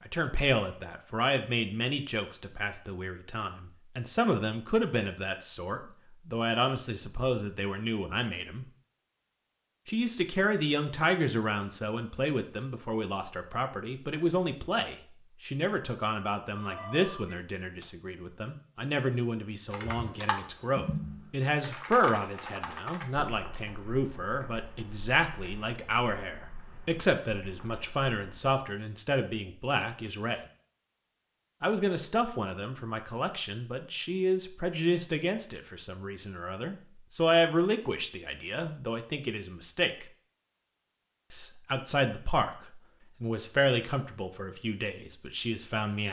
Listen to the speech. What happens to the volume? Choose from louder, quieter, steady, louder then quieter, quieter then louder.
steady.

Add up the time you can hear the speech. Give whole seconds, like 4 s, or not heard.
42 s.